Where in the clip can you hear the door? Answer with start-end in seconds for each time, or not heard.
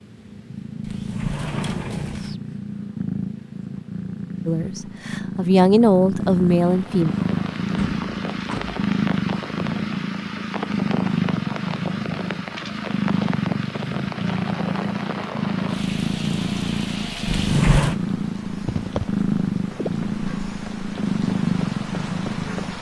0.8-2.4, 7.8-8.8, 17.2-17.9.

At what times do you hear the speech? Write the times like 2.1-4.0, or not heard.
4.5-7.1.